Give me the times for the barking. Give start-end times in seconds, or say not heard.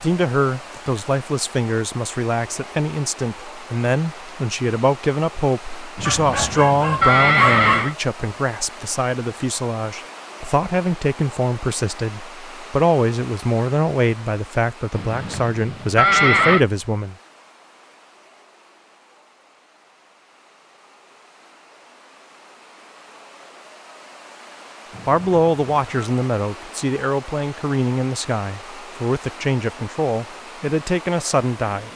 6.0-7.9.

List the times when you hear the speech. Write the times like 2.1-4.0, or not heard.
0.0-17.1, 25.1-31.9.